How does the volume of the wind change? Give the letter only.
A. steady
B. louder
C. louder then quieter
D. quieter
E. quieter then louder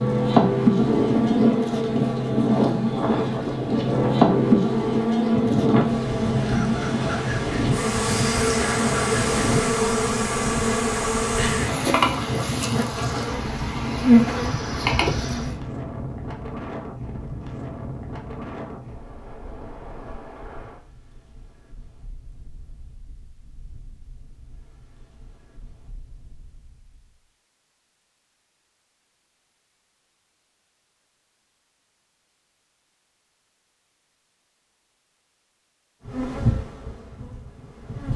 D.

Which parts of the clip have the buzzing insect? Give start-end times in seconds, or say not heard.
0.0-15.6, 36.0-38.1.